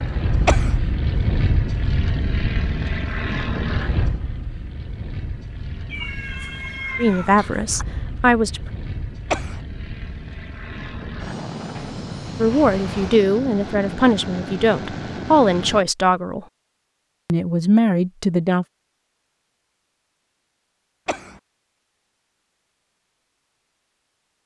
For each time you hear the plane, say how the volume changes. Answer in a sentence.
You can hear the plane from 0.0 to 15.8 s, getting quieter then louder.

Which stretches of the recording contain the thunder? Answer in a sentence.
You can't hear the thunder here.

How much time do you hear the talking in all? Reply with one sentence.
The talking can be heard for 7 seconds in total.